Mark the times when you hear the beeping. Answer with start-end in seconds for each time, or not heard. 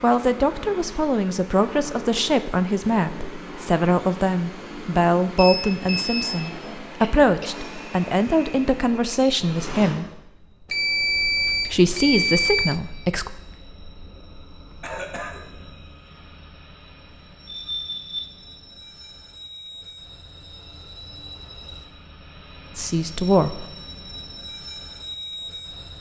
5.3-6.5, 10.7-12.8, 17.5-18.3.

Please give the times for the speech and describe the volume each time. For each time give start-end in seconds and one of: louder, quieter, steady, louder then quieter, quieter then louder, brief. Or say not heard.
0.0-10.1 steady
11.7-13.3 brief
22.8-23.6 brief.